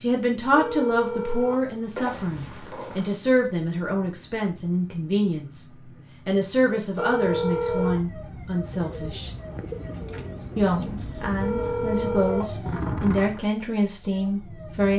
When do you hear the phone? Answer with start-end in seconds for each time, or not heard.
0.5-3.1, 7.0-8.0, 11.4-12.4.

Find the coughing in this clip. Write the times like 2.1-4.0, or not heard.
not heard.